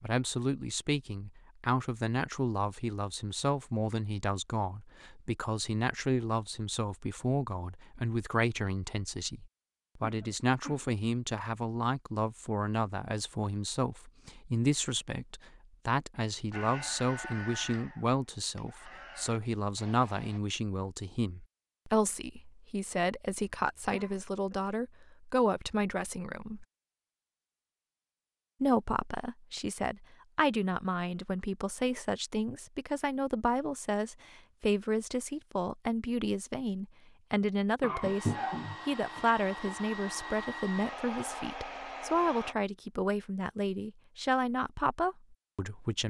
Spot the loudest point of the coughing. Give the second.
38 s.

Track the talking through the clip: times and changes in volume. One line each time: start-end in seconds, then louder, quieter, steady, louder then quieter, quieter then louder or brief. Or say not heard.
0.0-26.6 steady
28.6-46.0 steady.